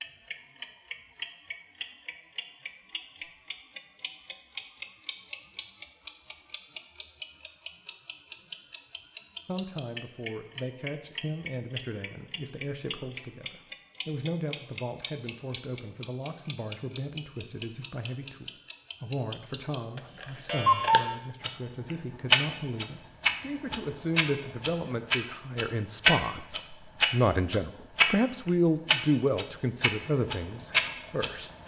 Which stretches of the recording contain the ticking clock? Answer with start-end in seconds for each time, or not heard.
0.0-31.6.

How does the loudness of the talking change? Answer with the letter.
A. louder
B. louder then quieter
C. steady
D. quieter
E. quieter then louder
A.